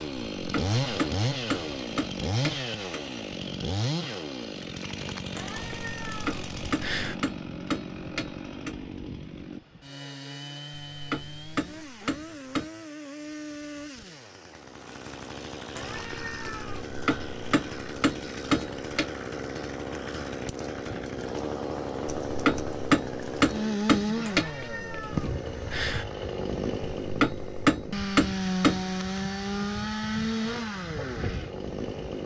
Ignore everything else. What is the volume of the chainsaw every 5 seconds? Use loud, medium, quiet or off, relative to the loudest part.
loud, medium, medium, medium, loud, loud, loud.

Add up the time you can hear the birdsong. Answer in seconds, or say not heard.
not heard.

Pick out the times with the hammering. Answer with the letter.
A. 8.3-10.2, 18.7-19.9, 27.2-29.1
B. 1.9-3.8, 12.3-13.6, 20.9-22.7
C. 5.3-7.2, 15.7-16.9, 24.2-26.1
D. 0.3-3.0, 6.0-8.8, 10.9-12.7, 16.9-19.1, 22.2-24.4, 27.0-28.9
D.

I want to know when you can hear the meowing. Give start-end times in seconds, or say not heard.
5.3-7.2, 15.7-16.9, 24.2-26.1.